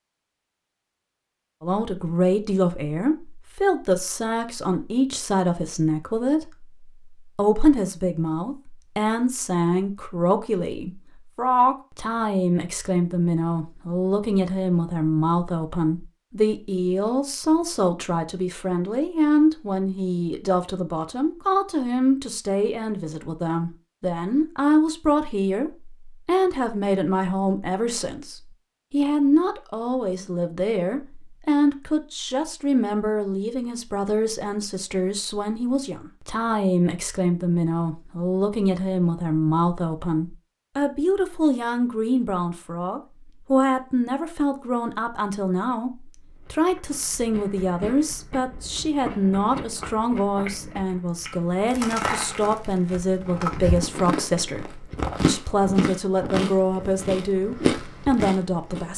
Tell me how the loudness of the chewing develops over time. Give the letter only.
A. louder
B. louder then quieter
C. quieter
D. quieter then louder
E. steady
A.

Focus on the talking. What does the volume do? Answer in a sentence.
The loudness of the talking stays about the same.